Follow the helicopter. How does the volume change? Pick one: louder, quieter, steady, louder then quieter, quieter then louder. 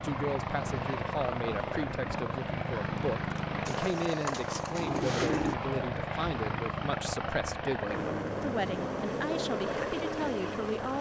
steady.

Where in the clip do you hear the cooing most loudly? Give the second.
5 s.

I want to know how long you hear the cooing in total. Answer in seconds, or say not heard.
2 s.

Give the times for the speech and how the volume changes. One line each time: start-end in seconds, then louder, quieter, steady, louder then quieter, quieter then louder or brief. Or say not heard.
0.0-10.9 steady.